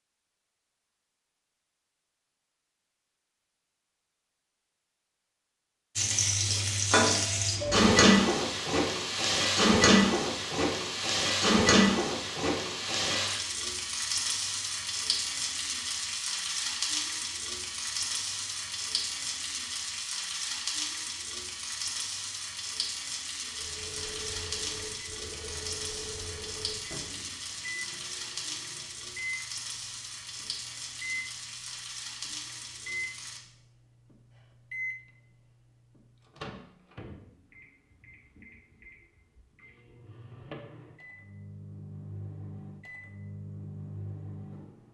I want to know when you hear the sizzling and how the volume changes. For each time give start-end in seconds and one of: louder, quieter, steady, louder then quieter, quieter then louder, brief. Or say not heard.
6.0-33.4 quieter.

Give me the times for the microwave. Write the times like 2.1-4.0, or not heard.
23.5-44.8.